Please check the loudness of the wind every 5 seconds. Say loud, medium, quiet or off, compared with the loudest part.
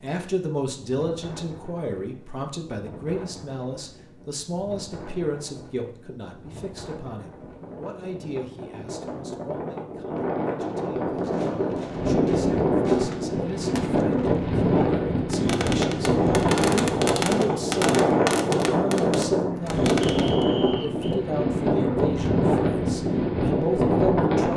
quiet, quiet, loud, loud, loud.